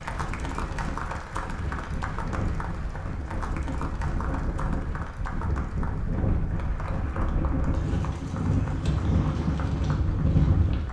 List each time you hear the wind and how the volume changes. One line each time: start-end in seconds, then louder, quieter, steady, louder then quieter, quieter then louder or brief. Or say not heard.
0.0-10.8 louder.